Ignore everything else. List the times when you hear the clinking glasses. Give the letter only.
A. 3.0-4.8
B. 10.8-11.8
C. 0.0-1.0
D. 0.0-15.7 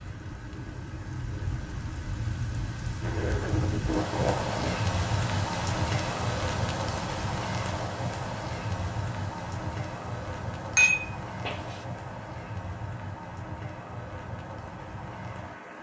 B.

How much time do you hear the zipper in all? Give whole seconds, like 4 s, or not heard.
2 s.